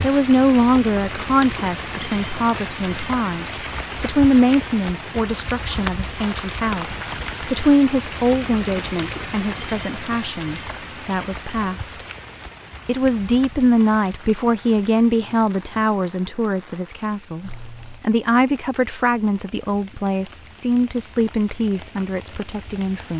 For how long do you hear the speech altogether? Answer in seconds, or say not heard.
22 s.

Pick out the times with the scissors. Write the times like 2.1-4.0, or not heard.
17.4-18.1.